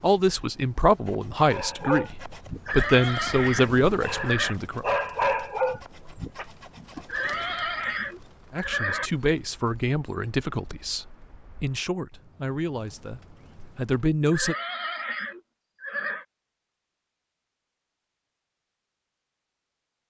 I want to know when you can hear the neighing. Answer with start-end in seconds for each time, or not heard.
2.6-4.5, 7.0-9.1, 14.3-16.2.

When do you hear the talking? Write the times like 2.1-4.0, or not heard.
0.0-4.8, 8.5-14.6.